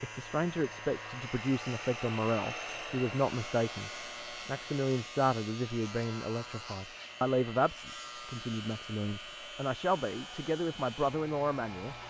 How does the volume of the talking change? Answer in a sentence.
The volume of the talking stays about the same.